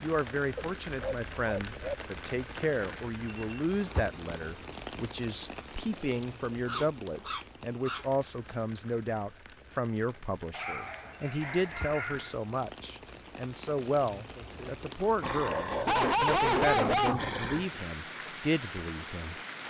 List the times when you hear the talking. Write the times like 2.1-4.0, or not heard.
0.0-19.4.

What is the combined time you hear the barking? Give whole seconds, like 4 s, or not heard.
7 s.